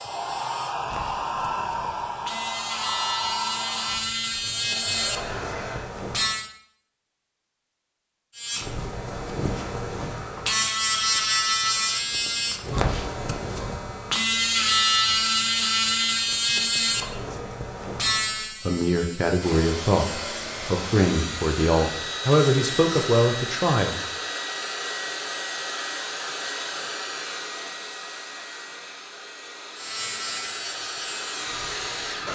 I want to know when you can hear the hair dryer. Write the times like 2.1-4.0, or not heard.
0.0-6.0, 19.4-32.3.